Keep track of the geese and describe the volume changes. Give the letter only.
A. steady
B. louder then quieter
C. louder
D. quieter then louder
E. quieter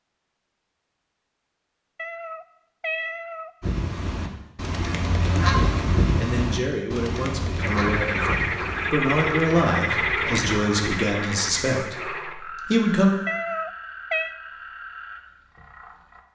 B.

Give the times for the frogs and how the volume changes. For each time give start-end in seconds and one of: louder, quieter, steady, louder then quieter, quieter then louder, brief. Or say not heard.
7.5-16.2 quieter.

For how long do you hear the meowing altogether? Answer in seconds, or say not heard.
3 s.